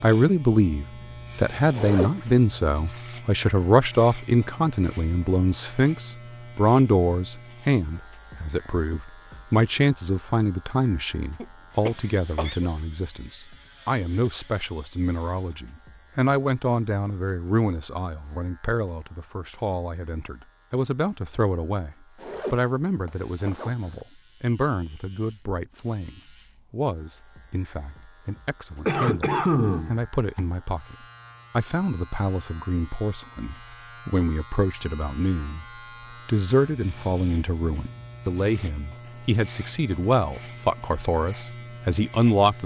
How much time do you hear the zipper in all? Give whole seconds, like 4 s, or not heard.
2 s.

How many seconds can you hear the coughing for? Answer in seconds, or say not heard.
3 s.